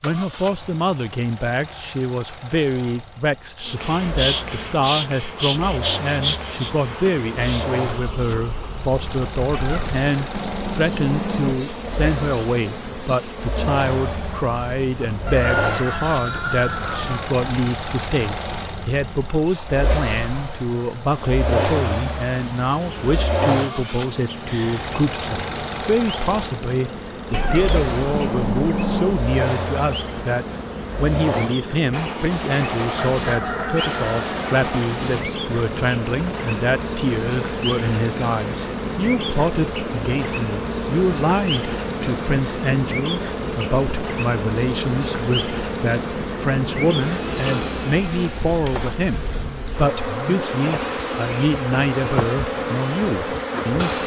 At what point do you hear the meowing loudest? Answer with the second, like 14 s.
29 s.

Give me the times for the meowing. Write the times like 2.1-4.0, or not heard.
9.5-11.6, 27.3-29.2.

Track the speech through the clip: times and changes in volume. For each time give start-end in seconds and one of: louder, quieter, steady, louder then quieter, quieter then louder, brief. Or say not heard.
0.0-54.0 steady.